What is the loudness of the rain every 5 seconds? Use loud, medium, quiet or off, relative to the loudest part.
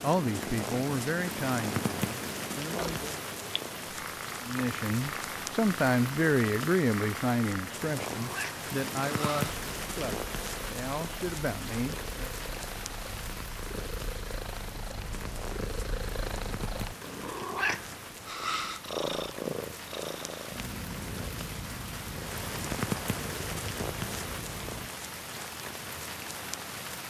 loud, loud, loud, medium, loud, loud.